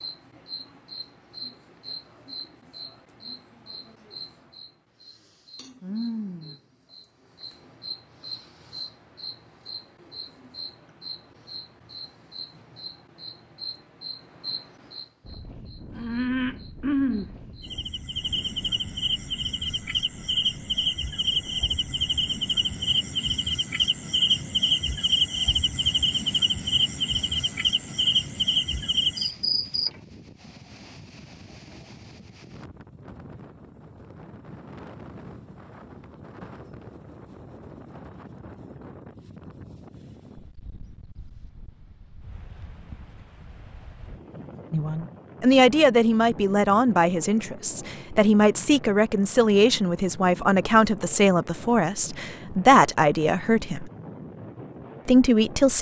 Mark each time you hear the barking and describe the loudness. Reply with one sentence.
The barking can't be heard in this clip.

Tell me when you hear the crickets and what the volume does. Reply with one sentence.
You can hear the crickets from 0.0 to 29.9 s, getting louder.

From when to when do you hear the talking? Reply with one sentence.
The talking can be heard from 44.7 to 53.9 s and from 55.0 to 55.7 s.